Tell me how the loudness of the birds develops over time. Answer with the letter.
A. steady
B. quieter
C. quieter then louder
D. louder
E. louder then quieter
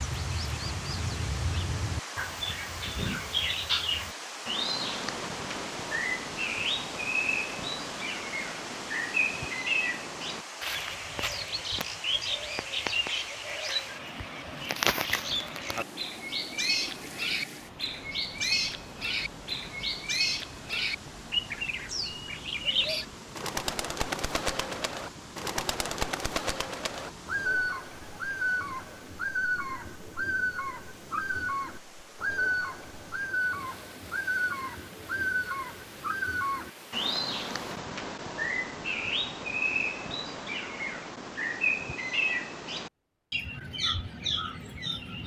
A.